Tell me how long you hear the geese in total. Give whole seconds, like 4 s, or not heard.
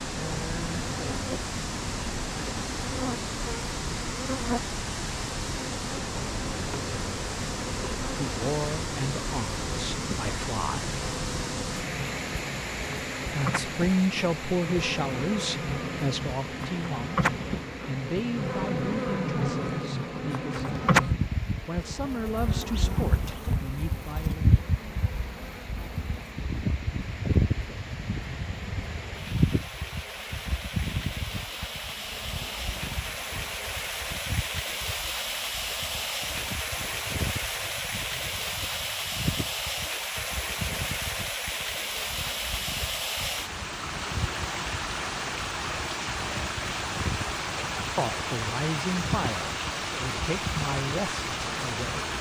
not heard.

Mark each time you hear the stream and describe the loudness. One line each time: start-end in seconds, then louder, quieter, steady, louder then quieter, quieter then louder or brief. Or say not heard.
0.0-52.1 quieter then louder.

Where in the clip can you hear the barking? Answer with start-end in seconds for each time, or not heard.
not heard.